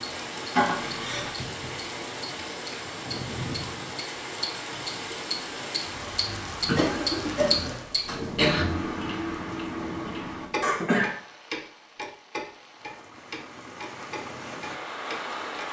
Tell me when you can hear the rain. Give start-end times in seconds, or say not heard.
0.0-15.6.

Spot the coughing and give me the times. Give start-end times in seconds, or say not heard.
0.6-1.4, 6.6-8.7, 10.6-11.2.